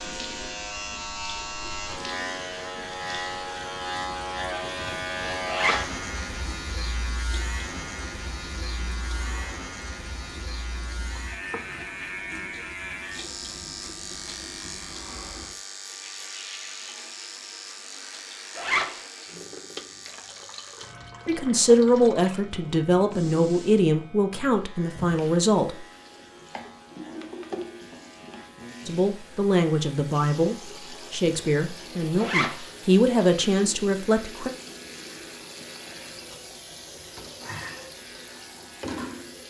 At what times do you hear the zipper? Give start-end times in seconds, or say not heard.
5.5-6.0, 18.6-19.0, 32.1-32.6.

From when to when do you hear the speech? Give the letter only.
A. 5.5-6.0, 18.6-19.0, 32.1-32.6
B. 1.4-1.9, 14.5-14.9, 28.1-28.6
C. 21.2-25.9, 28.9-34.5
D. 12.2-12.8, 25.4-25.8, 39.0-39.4
C.